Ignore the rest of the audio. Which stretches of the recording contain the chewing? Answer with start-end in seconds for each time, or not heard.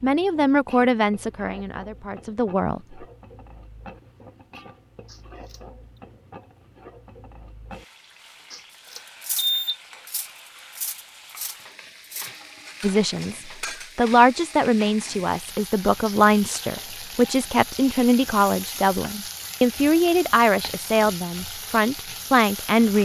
not heard.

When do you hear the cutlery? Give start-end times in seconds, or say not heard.
9.2-13.9.